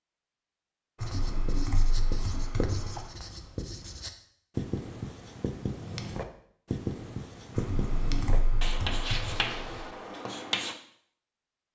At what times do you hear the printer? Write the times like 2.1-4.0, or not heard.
not heard.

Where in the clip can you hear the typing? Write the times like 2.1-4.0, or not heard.
1.0-3.1, 7.5-9.9.